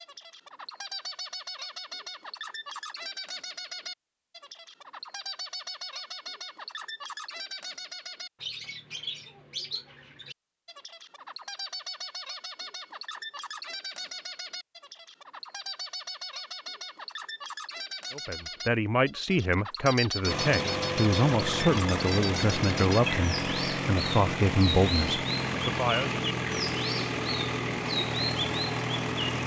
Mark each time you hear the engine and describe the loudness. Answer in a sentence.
You can hear the engine from 20.2 to 29.4 s, at a steady volume.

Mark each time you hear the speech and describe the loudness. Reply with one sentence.
You can hear the speech from 18.1 to 26.2 s, at a steady volume.